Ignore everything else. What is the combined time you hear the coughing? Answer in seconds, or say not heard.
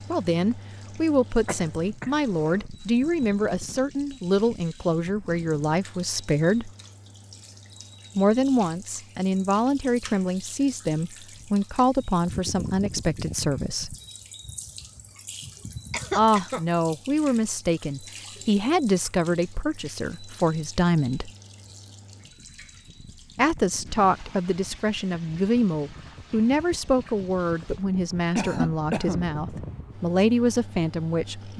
3 s.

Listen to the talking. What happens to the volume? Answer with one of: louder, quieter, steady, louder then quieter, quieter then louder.
steady.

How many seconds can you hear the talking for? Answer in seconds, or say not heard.
26 s.